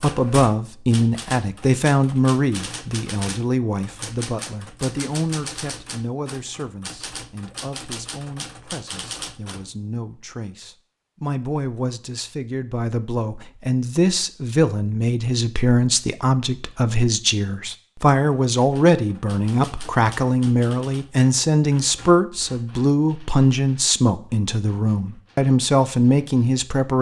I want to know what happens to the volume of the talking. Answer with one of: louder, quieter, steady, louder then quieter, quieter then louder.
quieter then louder.